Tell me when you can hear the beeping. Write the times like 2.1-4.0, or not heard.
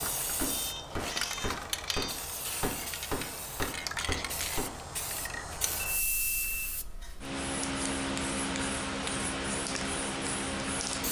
0.5-2.2, 5.8-7.3.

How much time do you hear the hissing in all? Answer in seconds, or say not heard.
11 s.